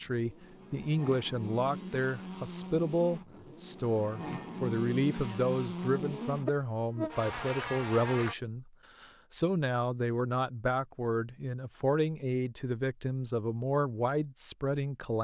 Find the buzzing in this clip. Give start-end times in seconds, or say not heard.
0.0-8.3.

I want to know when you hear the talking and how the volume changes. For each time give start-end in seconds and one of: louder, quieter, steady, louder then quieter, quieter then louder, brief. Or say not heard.
0.0-15.1 steady.